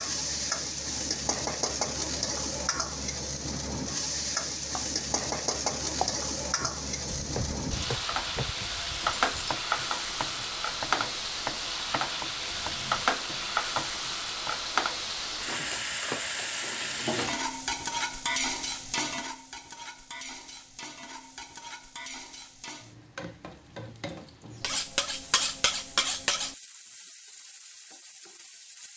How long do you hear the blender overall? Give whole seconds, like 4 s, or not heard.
not heard.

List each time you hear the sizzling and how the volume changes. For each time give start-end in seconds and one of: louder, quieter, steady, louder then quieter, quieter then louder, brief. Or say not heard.
0.0-28.9 quieter.